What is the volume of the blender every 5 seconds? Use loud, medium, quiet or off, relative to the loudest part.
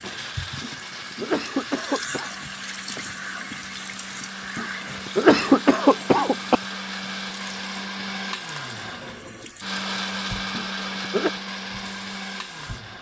medium, loud, loud.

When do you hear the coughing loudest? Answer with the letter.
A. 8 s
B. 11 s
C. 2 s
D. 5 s
D.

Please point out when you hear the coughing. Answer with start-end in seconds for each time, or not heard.
0.6-2.3, 4.5-6.6, 10.5-11.3.